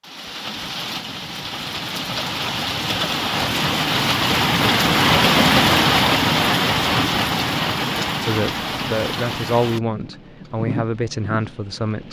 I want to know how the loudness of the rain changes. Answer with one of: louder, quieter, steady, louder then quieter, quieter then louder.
louder then quieter.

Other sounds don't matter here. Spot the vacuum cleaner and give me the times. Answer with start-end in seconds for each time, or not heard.
not heard.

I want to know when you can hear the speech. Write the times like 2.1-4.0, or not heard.
8.2-12.0.